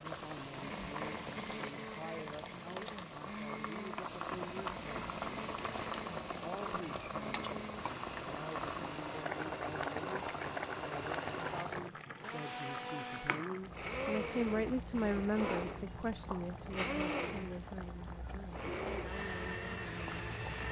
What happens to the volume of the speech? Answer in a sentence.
The volume of the speech goes up, then down.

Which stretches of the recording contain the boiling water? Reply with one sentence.
The boiling water can be heard from 0.0 to 20.6 s.